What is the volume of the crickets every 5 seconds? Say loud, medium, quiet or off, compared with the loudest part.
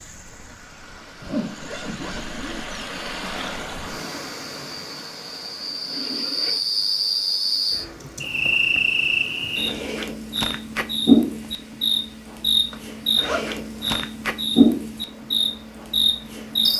quiet, loud, loud, loud.